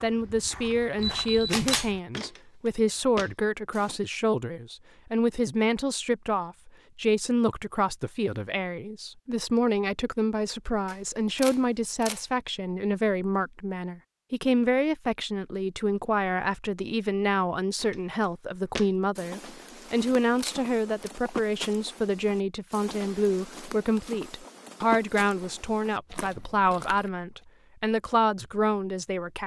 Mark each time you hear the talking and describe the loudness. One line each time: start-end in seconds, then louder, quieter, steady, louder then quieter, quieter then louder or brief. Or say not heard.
0.0-29.4 steady.